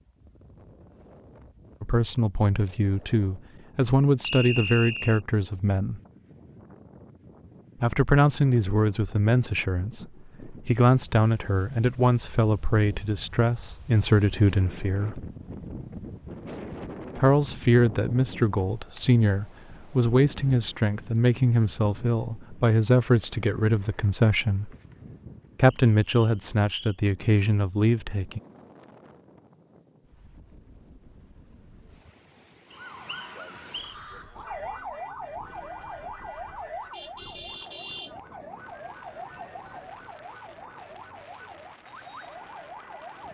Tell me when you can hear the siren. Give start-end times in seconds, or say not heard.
32.7-43.2.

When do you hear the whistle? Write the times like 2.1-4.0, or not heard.
4.2-5.2, 25.7-26.9, 32.7-34.0.